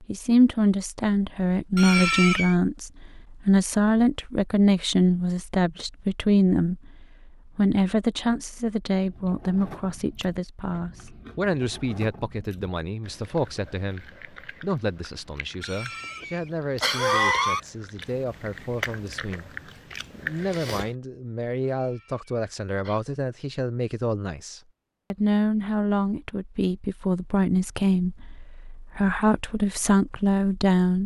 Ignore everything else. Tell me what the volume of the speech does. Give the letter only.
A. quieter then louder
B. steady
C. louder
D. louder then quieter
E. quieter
A.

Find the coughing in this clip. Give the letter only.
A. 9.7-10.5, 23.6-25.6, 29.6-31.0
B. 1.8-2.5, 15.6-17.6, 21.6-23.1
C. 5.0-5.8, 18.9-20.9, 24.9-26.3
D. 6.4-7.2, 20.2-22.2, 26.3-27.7
B.